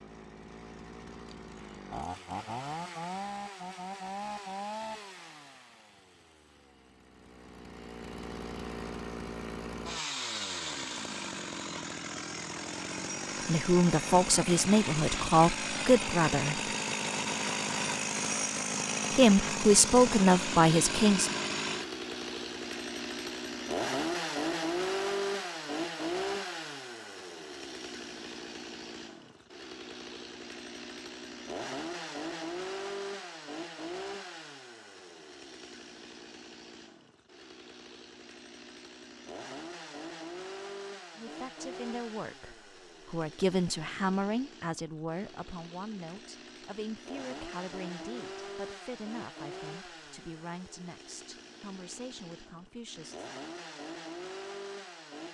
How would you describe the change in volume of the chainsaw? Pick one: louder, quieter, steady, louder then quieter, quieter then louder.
louder then quieter.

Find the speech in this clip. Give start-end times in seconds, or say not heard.
13.4-16.6, 19.1-21.4, 41.1-53.3.